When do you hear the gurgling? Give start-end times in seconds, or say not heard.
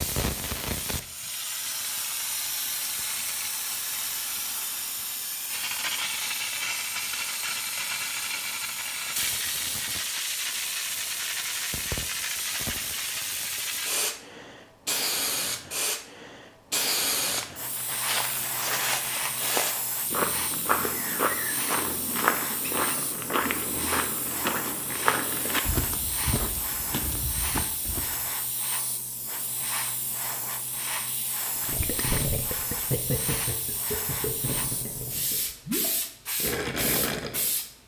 31.6-37.5.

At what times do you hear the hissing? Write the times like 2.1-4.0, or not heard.
0.0-37.8.